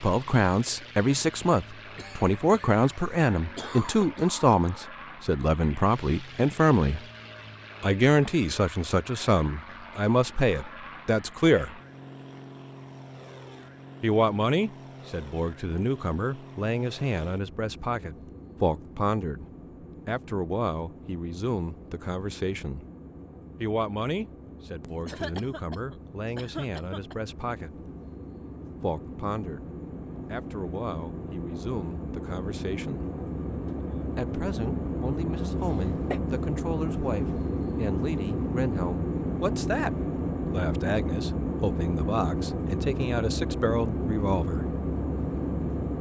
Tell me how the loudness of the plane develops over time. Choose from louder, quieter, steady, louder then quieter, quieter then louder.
louder.